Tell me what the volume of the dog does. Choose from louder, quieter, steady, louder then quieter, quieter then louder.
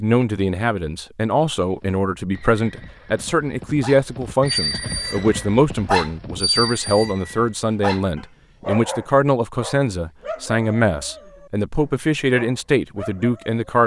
quieter.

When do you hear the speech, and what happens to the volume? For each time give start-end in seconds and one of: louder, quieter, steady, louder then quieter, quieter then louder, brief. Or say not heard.
0.0-13.8 steady.